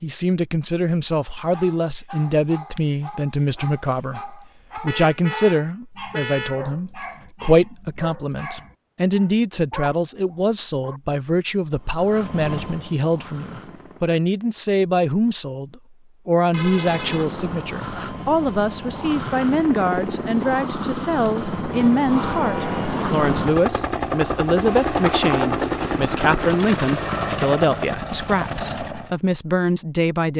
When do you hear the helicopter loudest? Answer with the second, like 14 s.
25 s.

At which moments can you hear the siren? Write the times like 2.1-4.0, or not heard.
not heard.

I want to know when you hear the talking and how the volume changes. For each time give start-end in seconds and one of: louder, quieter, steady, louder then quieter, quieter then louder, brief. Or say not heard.
0.0-30.3 steady.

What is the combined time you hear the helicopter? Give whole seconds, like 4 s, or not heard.
15 s.